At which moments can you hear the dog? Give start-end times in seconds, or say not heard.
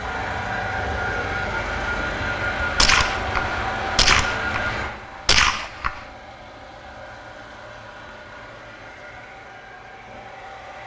not heard.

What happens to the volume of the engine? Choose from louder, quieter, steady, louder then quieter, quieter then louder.
quieter.